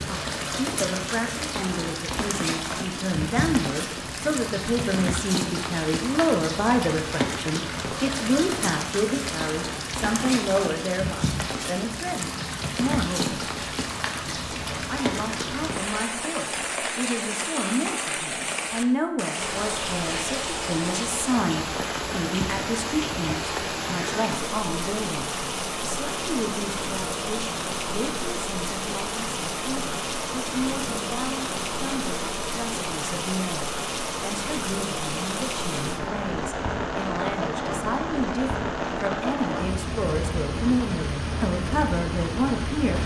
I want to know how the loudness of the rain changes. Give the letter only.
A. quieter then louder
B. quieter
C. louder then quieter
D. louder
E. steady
E.